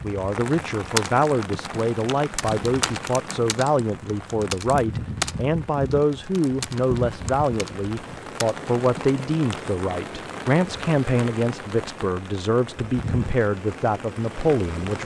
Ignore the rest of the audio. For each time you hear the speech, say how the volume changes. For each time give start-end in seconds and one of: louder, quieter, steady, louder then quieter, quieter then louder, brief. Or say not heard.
0.0-14.9 steady.